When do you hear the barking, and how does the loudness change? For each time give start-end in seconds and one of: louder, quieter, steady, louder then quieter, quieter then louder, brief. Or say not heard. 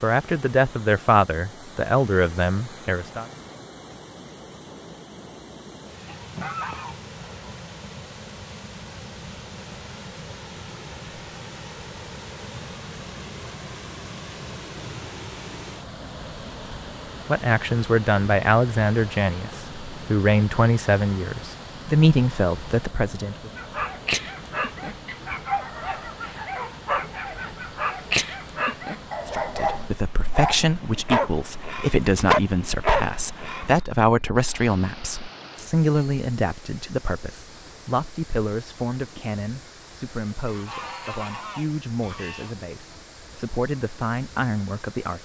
23.6-33.8 louder.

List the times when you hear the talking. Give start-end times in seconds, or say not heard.
0.0-3.2, 17.2-23.5, 29.2-45.2.